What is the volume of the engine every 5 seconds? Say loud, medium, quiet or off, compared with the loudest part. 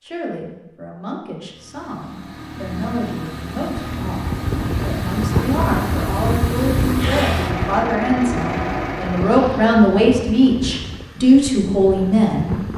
medium, loud, off.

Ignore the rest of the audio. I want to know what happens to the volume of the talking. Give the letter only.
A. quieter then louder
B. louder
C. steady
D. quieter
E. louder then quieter
B.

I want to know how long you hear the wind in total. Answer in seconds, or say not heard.
9 s.